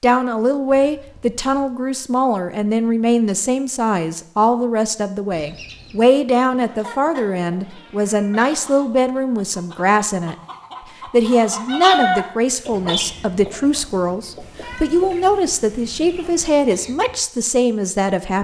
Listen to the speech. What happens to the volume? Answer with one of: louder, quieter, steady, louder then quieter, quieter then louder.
steady.